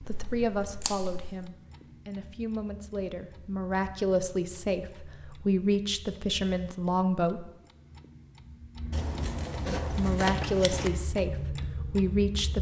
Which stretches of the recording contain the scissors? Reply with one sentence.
You can hear the scissors from 0.1 to 1.4 s and from 8.9 to 10.9 s.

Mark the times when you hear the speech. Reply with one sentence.
The speech can be heard from 0.0 to 7.5 s and from 9.7 to 12.5 s.